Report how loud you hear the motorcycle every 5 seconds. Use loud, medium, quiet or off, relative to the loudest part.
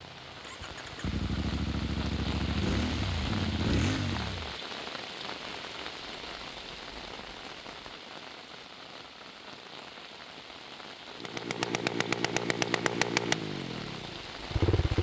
loud, off, loud.